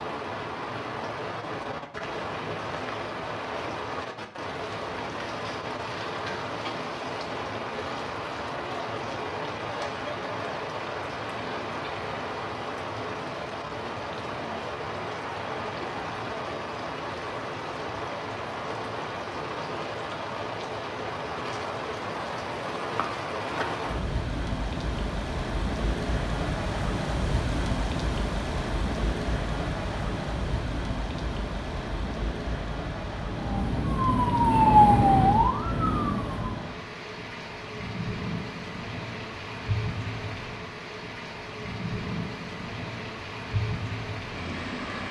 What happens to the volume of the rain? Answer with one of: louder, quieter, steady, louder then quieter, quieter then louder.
steady.